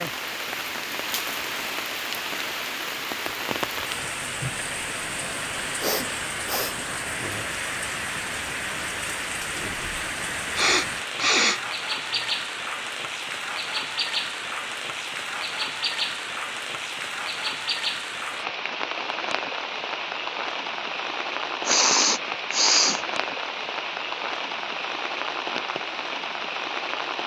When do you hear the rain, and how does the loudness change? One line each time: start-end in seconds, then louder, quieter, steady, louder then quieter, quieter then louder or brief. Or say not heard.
0.0-27.2 steady.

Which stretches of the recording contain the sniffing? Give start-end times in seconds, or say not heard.
5.8-6.8, 10.6-12.2, 21.6-23.0.